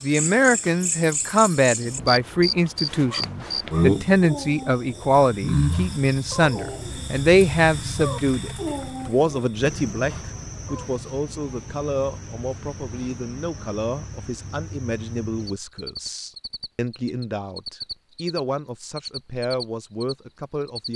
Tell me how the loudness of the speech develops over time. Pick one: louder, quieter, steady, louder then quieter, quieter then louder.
quieter.